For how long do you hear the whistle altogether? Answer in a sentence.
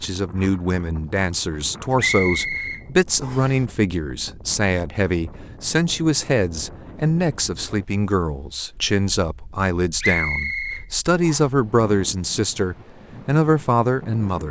The whistle can be heard for 3 seconds in total.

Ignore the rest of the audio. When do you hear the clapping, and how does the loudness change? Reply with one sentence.
You can't hear the clapping here.